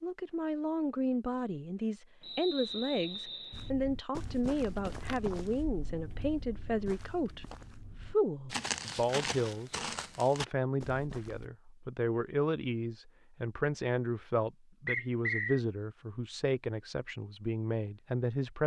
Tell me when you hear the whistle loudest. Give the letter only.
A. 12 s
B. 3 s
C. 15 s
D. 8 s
C.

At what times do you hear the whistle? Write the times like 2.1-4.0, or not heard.
2.2-3.7, 14.8-15.6.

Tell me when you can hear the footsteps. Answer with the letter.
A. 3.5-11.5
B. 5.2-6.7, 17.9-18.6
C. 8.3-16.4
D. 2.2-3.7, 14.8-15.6
A.